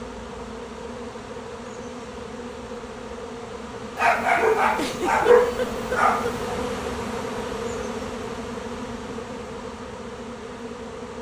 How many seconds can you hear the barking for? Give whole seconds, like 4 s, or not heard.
2 s.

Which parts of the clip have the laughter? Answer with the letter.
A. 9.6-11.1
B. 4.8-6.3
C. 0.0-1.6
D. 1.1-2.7
B.